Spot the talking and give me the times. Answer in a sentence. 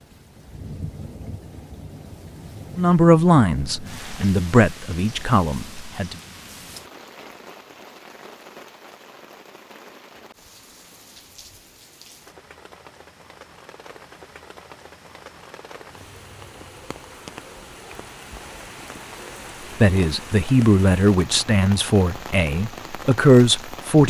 The talking can be heard from 2.8 to 6.2 s and from 19.8 to 24.0 s.